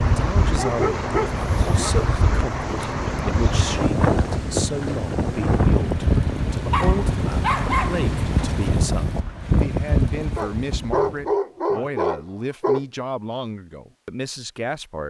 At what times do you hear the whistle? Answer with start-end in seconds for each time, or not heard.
not heard.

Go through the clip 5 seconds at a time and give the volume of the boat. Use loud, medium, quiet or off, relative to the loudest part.
loud, loud, off.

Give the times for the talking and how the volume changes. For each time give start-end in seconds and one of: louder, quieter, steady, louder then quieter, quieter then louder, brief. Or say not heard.
0.0-15.0 steady.